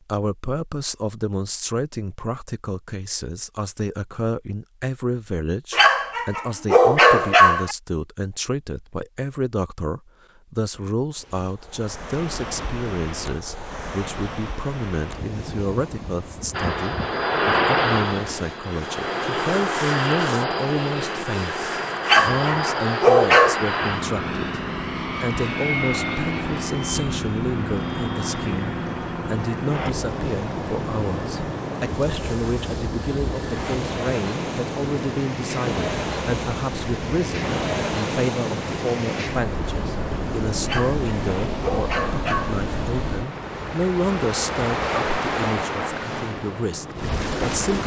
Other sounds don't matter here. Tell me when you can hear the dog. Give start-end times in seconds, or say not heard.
5.7-7.8, 22.1-23.6, 40.6-42.6.